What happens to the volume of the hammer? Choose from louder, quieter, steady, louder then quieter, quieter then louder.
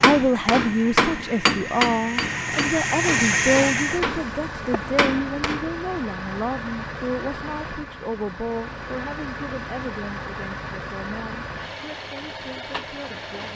quieter then louder.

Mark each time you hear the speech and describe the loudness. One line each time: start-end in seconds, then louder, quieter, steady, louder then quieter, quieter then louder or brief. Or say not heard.
0.0-13.5 quieter.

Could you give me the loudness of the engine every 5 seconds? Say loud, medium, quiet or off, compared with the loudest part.
loud, medium, medium.